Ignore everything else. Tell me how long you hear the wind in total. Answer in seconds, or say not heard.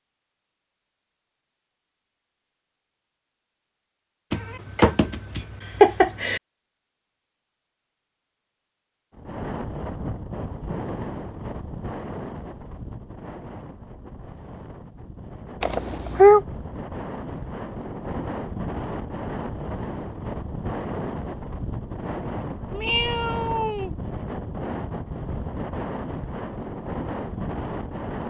19 s.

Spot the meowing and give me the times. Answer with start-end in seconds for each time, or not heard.
4.3-6.4, 15.6-16.4, 22.7-23.9.